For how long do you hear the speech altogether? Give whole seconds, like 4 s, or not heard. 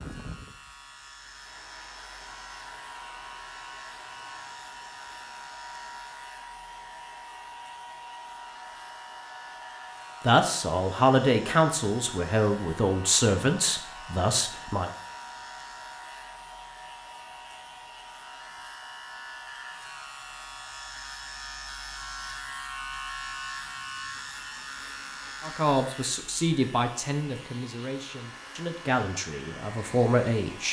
10 s.